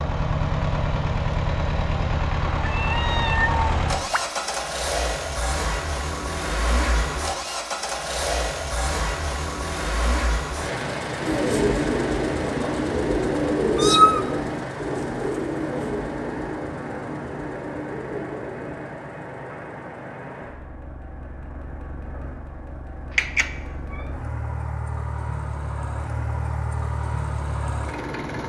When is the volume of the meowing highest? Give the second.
14 s.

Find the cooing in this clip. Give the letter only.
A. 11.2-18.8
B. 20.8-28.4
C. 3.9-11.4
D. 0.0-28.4
A.